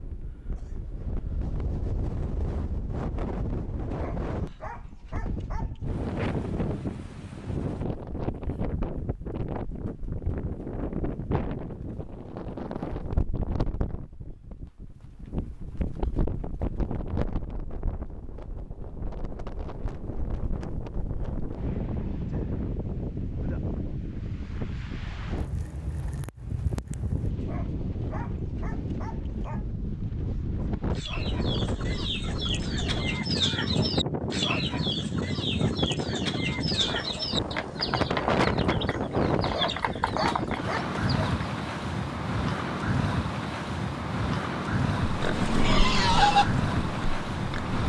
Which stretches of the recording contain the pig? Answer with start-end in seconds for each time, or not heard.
45.0-47.8.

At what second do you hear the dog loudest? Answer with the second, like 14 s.
40 s.